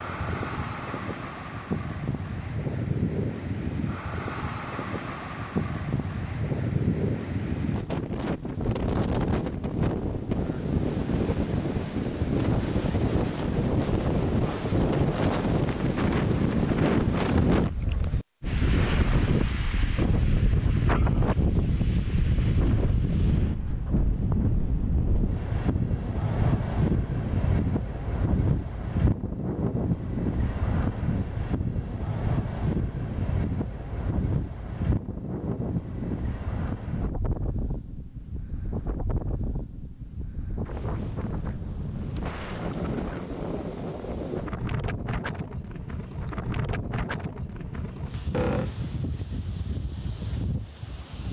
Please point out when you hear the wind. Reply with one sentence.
The wind can be heard from 0.0 to 51.2 s.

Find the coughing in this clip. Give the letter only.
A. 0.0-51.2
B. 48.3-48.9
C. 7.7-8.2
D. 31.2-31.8
B.